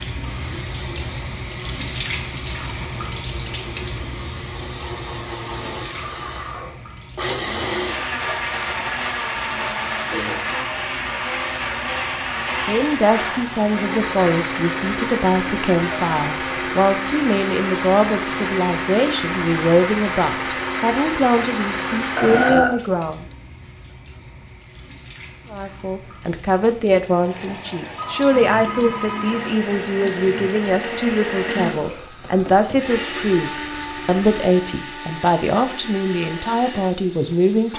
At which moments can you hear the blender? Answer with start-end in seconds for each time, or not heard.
0.1-22.6, 28.5-37.7.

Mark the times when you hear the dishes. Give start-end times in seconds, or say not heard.
not heard.